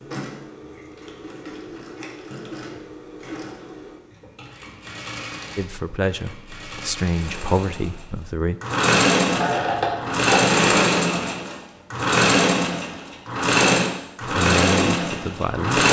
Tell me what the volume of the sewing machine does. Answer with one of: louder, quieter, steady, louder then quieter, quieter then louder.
louder.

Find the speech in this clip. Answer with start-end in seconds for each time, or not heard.
5.5-8.6, 14.2-15.8.